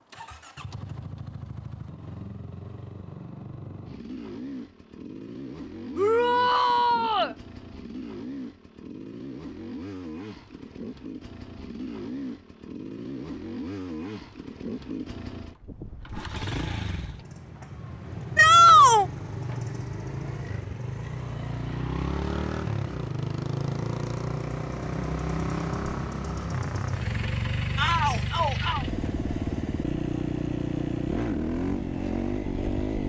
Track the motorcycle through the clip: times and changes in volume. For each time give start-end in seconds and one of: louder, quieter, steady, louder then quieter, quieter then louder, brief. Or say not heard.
0.0-33.0 louder.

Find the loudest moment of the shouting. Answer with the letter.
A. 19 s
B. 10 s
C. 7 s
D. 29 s
A.